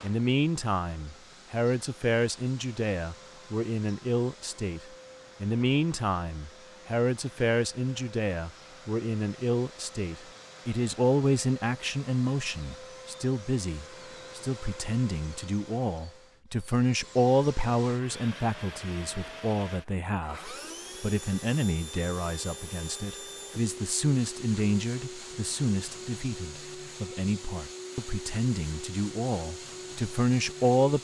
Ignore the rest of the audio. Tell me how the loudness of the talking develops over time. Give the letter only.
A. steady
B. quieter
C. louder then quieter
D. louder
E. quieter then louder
A.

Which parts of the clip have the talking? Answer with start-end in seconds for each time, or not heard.
0.0-4.8, 5.4-30.9.